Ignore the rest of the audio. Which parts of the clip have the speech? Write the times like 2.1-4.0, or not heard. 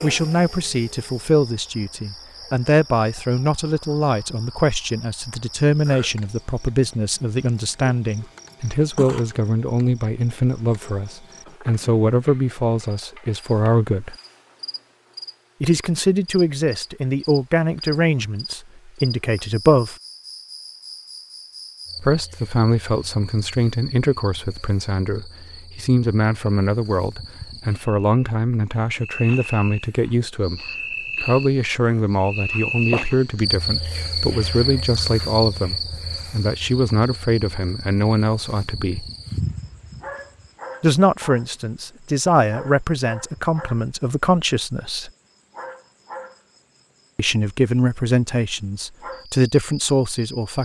0.0-14.2, 15.6-19.9, 22.0-30.6, 31.2-39.0, 40.8-45.1, 47.1-50.5.